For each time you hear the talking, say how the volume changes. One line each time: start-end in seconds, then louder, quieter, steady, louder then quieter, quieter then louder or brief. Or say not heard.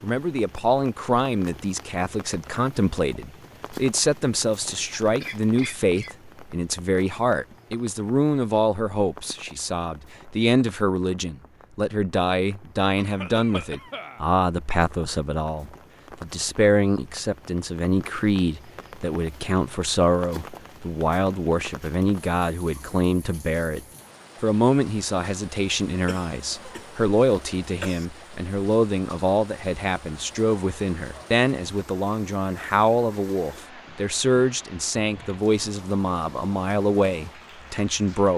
0.0-38.3 steady.